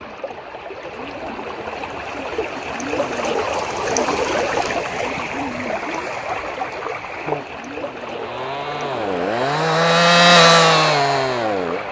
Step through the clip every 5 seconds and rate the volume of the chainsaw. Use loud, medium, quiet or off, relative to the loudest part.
off, medium, loud.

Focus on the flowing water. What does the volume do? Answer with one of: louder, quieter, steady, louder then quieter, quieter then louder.
louder then quieter.